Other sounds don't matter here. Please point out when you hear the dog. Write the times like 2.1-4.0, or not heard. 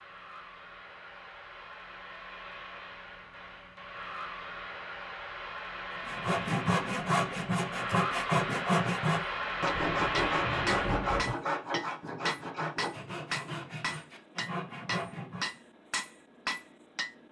not heard.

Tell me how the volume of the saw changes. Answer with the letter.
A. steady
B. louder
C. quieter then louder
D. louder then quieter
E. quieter
E.